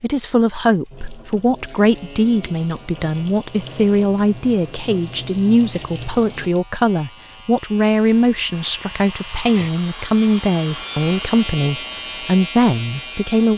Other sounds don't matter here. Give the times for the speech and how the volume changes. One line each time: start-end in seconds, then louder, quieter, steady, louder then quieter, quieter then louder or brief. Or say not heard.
0.0-13.5 steady.